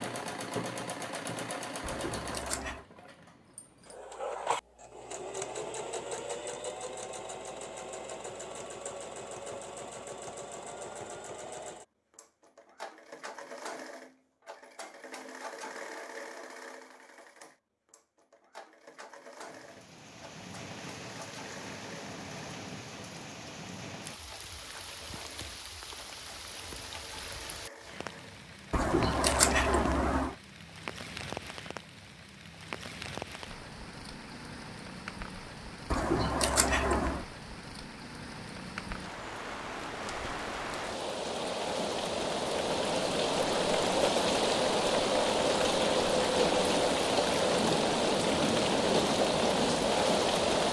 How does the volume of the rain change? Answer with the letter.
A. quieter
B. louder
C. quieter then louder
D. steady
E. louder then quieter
B.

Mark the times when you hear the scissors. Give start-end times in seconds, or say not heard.
1.8-2.9, 28.7-30.4, 35.9-37.2.